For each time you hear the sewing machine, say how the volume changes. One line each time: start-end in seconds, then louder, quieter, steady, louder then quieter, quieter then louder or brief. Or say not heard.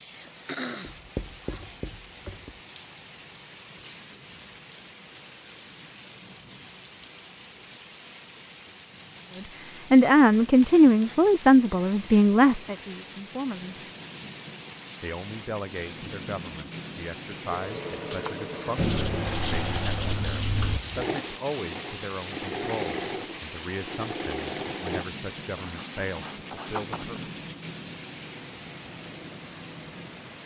17.4-25.1 steady.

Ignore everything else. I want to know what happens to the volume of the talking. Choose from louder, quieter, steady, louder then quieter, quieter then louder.
quieter.